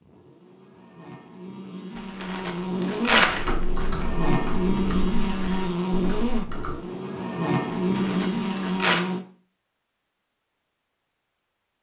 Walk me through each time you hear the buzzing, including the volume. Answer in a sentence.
You can hear the buzzing from 0.0 to 9.2 s, getting louder.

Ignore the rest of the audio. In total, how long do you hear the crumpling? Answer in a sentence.
You can hear the crumpling for 3 seconds altogether.